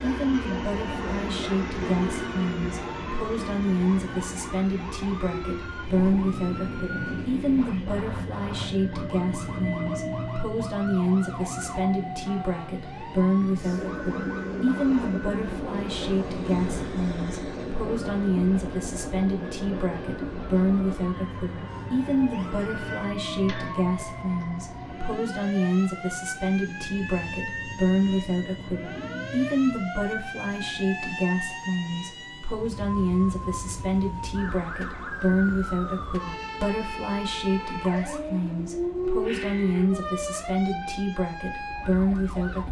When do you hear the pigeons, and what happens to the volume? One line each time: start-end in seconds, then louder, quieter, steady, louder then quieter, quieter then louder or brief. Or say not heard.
not heard.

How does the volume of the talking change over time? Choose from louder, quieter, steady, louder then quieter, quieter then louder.
steady.